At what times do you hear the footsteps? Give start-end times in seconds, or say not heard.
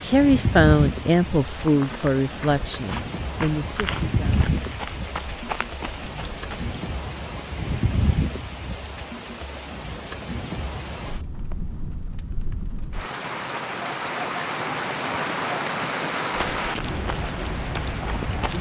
1.6-6.8, 16.3-18.5.